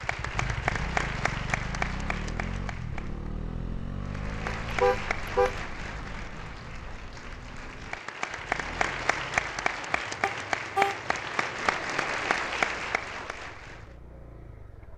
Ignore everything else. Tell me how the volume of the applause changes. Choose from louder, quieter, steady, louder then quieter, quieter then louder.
quieter then louder.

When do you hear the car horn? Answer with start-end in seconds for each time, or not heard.
4.6-5.6, 10.2-10.9.